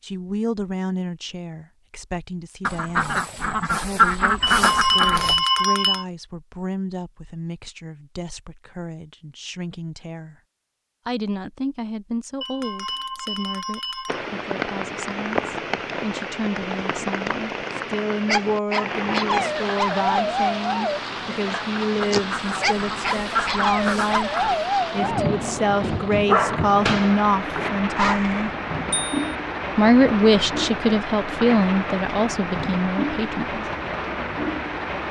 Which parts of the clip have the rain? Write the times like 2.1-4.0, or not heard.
14.1-35.0.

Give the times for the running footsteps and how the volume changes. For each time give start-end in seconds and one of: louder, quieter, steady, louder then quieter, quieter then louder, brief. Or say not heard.
not heard.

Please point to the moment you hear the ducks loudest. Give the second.
4 s.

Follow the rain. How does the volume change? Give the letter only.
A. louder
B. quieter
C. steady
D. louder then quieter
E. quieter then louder
C.